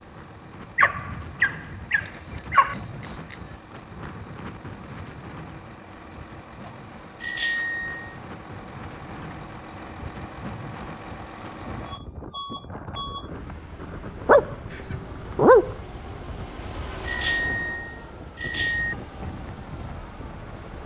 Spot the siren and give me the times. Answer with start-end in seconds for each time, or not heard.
not heard.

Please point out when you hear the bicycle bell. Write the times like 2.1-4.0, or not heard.
1.9-3.6, 7.2-8.2, 17.0-18.9.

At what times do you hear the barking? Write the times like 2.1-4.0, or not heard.
0.8-2.8, 14.2-15.8.